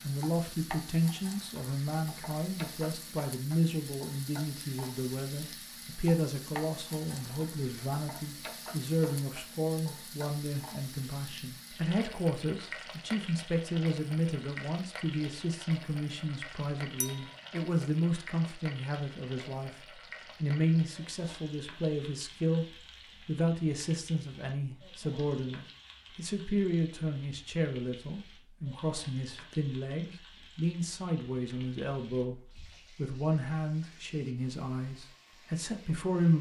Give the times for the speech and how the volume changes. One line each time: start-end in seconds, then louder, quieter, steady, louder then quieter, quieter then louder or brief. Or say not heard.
0.0-22.6 steady
23.2-36.3 steady.